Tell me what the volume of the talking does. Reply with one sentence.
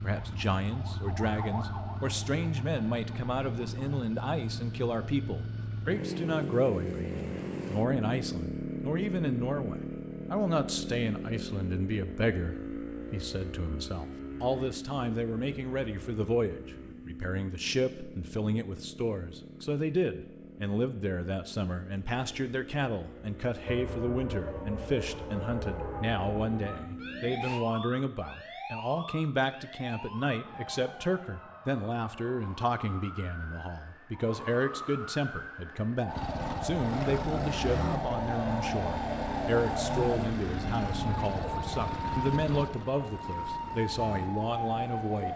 The loudness of the talking stays about the same.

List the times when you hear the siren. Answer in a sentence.
The siren can be heard from 0.1 to 4.0 s and from 23.6 to 45.3 s.